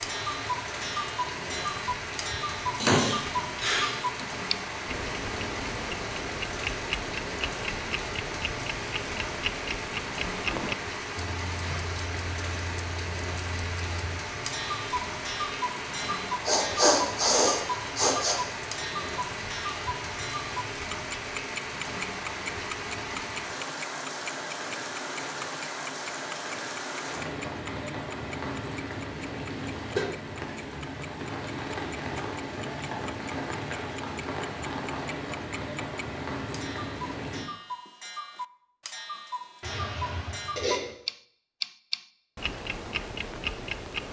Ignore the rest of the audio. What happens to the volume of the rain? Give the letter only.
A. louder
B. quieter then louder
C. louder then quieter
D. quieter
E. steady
E.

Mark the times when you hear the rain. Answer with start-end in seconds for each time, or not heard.
0.0-37.5.